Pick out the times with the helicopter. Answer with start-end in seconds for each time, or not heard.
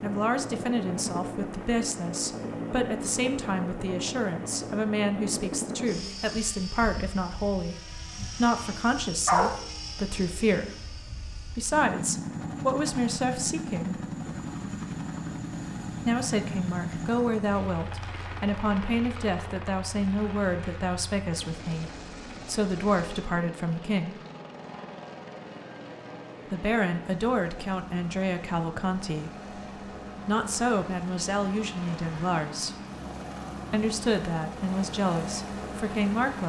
0.0-36.4.